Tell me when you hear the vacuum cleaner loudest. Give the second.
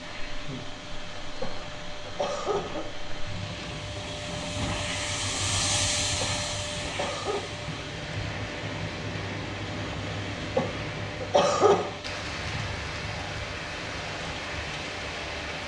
6 s.